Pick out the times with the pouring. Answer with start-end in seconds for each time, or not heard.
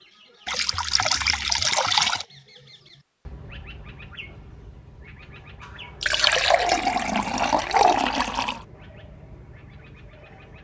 0.5-2.2, 6.0-8.6.